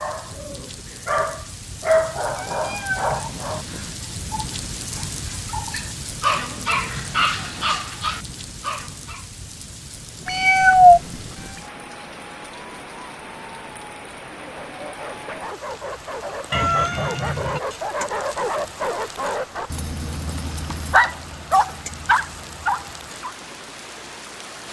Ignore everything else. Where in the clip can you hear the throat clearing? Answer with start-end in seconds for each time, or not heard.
not heard.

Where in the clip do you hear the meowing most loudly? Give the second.
11 s.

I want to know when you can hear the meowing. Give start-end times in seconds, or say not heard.
2.2-3.2, 10.2-11.2, 16.5-17.6.